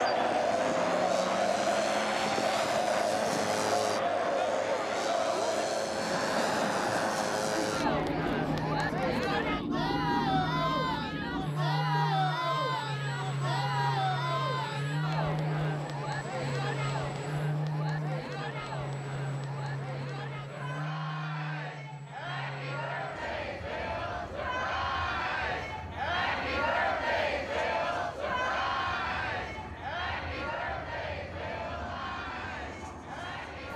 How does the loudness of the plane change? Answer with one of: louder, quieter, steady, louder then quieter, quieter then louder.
quieter.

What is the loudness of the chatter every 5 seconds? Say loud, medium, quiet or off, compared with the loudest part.
loud, loud, loud, medium, medium, loud, medium.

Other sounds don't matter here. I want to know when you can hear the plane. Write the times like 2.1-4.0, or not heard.
0.0-33.7.